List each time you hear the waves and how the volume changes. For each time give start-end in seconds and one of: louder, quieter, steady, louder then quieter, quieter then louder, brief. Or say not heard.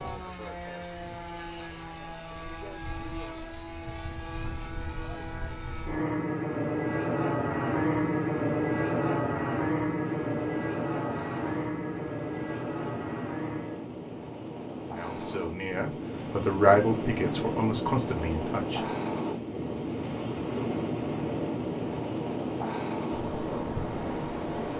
10.0-24.7 louder.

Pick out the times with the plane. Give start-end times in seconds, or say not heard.
0.0-13.9.